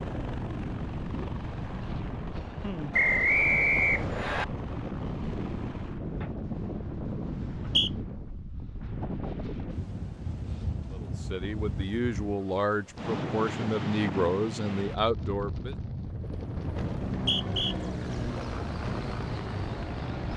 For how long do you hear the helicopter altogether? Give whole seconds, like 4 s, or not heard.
13 s.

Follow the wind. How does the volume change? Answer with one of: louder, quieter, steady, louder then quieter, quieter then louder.
steady.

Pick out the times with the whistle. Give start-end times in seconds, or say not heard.
2.9-4.5, 7.3-7.9, 17.1-17.8.